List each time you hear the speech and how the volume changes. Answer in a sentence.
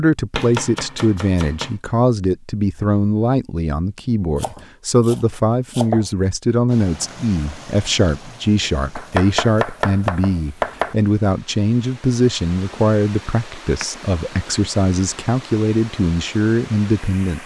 You can hear the speech from 0.0 to 17.4 s, at a steady volume.